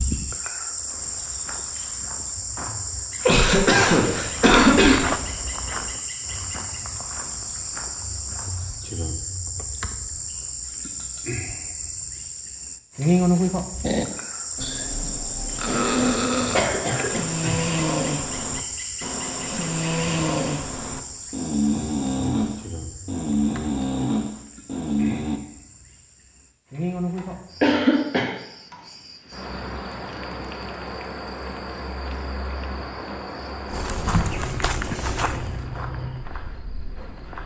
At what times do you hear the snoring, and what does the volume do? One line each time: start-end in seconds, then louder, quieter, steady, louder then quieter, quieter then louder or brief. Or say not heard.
13.8-25.4 steady.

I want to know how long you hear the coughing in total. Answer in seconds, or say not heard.
4 s.